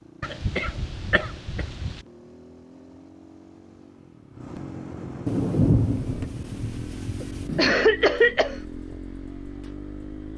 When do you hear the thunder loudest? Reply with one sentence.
The loudest moment of the thunder is at 6 seconds.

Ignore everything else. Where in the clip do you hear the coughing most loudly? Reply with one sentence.
The loudest moment of the coughing is at 8 seconds.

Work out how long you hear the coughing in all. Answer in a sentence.
The coughing can be heard for 3 seconds in total.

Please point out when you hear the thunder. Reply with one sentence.
You can hear the thunder from 5.2 to 7.7 s.